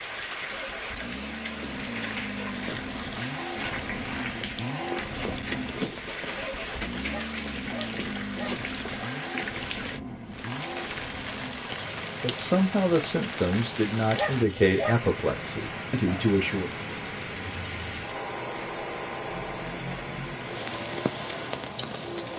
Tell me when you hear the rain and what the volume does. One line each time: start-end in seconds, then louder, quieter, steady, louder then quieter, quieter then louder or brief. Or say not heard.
0.0-22.3 steady.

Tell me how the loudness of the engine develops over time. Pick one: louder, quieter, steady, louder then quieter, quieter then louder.
steady.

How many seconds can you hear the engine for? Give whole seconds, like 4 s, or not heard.
22 s.